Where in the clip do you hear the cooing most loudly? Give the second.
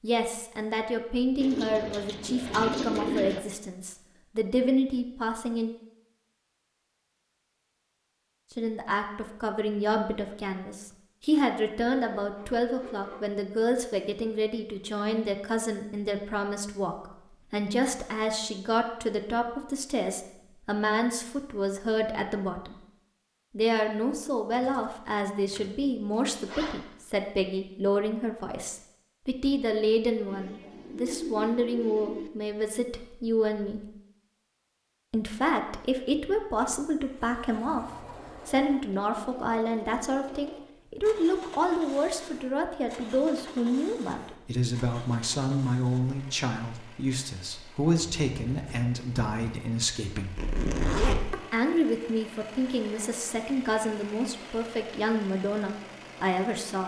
3 s.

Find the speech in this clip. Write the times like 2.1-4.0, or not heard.
0.0-5.7, 8.6-22.8, 23.5-33.9, 35.1-50.4, 51.3-56.8.